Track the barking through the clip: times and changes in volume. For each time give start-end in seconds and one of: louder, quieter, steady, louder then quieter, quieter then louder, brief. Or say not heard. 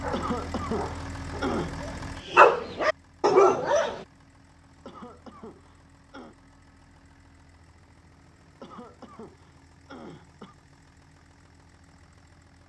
0.0-4.0 quieter then louder.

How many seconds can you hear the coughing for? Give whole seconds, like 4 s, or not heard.
5 s.